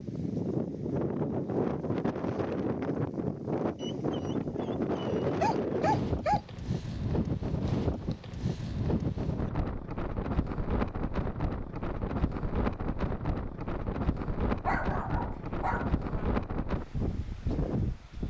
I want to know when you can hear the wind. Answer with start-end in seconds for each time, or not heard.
0.0-18.2.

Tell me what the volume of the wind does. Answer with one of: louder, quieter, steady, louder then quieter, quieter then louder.
steady.